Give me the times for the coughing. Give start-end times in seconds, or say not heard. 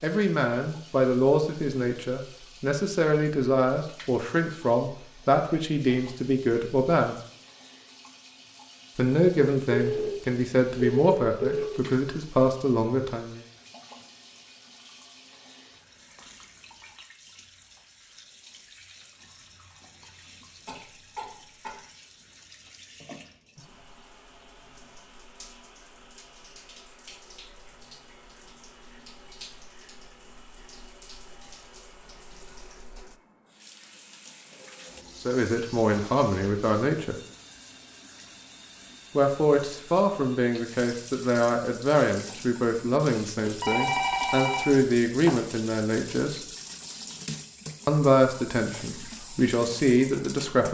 20.6-21.8.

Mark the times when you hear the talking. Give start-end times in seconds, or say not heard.
0.0-7.2, 8.9-13.4, 35.2-37.1, 39.1-46.4, 47.9-50.6.